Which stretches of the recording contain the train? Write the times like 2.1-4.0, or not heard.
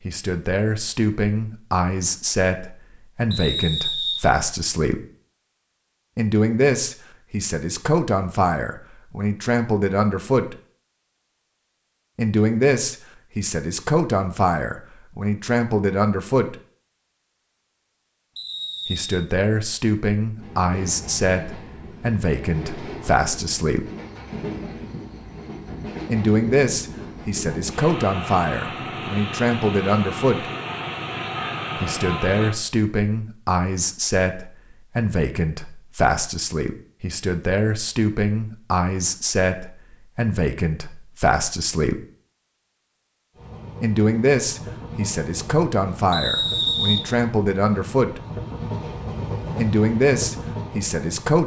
20.4-32.5, 43.4-51.4.